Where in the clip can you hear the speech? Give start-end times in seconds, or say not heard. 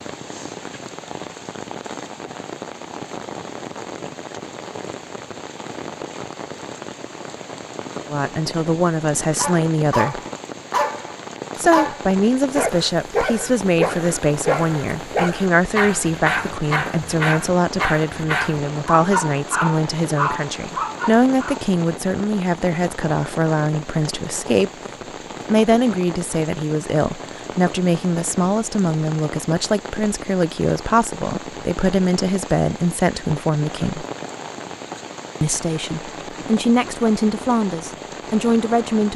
8.1-10.2, 11.6-24.7, 25.5-34.0, 35.4-39.1.